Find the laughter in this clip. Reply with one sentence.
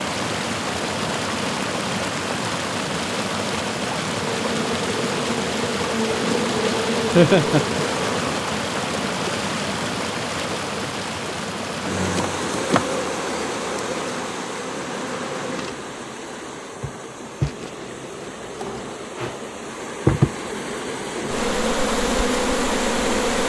The laughter can be heard from 7.2 to 7.7 s.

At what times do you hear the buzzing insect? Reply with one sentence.
You can hear the buzzing insect from 4.2 to 8.3 s and from 11.8 to 23.4 s.